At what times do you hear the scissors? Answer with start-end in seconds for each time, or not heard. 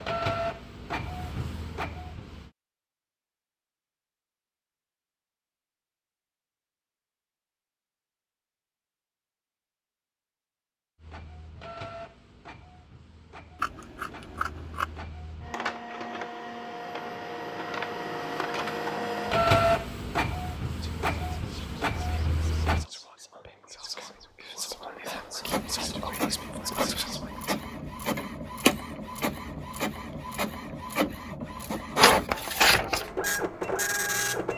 13.6-15.1.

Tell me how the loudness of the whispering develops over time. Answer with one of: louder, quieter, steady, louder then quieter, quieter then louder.
louder.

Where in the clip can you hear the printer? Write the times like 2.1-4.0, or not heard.
0.0-2.5, 11.0-22.9, 25.4-34.5.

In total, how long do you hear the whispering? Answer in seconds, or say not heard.
7 s.